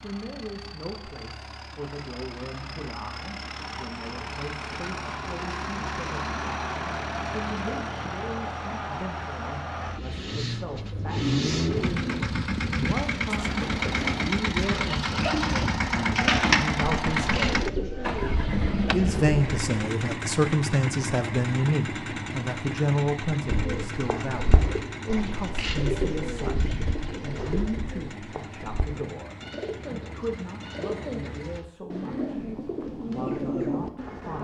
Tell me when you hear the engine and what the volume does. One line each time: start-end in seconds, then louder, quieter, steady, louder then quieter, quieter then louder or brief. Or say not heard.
0.0-31.6 louder then quieter.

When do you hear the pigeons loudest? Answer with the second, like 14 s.
16 s.